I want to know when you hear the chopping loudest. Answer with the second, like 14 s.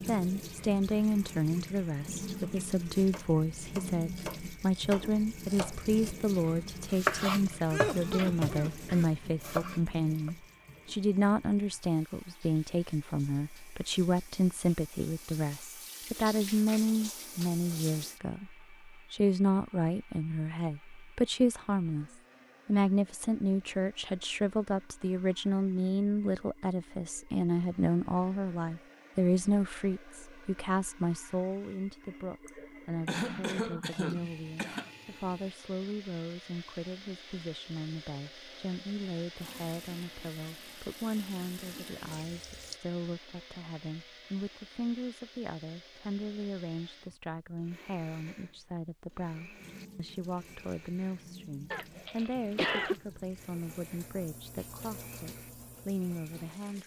7 s.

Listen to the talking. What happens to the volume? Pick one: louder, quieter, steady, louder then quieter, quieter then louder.
quieter.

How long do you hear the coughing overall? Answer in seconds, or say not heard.
5 s.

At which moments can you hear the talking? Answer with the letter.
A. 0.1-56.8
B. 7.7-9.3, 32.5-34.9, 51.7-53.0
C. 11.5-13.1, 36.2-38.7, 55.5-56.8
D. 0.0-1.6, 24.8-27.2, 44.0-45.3
A.